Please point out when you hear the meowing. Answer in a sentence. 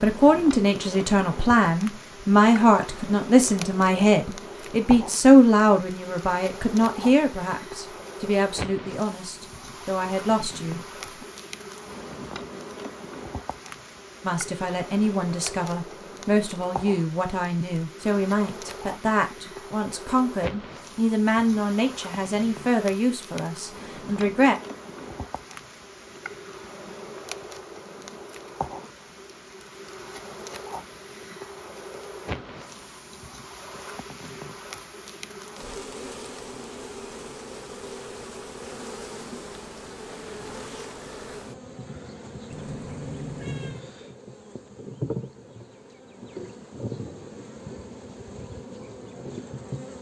You can hear the meowing from 42.5 to 43.9 s.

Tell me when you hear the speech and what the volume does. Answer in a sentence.
You can hear the speech from 0.0 to 11.2 s, getting quieter; and from 14.2 to 24.6 s, at a steady volume.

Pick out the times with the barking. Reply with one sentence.
The barking can't be heard in this clip.